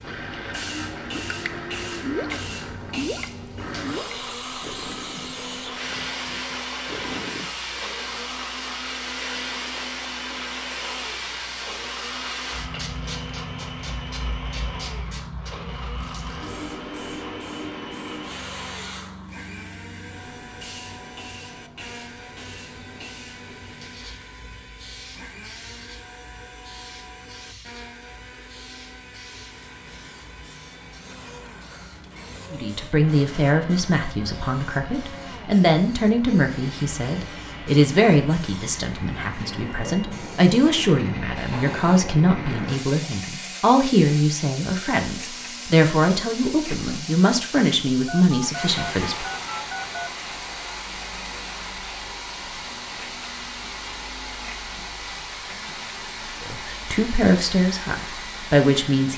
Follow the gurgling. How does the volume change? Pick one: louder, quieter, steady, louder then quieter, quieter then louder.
quieter.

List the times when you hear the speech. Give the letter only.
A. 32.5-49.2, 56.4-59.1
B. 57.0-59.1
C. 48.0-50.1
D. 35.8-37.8
A.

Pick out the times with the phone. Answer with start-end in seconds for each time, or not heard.
48.0-50.1.